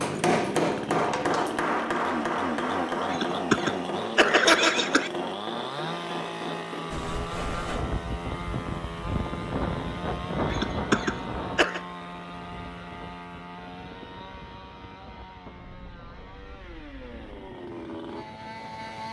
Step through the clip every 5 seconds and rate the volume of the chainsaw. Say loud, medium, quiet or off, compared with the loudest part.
loud, loud, medium, medium.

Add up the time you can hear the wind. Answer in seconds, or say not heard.
12 s.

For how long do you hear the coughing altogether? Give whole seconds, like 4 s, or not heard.
3 s.